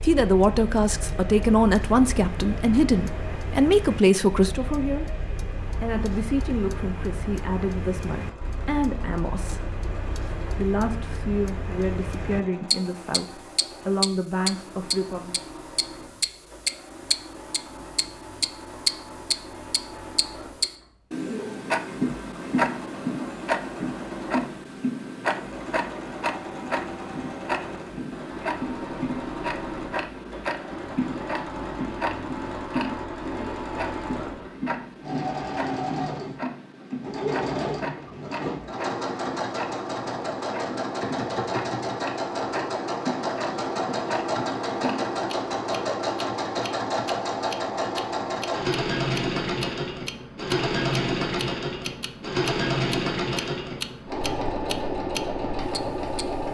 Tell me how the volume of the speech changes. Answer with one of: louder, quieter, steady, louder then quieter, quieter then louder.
quieter.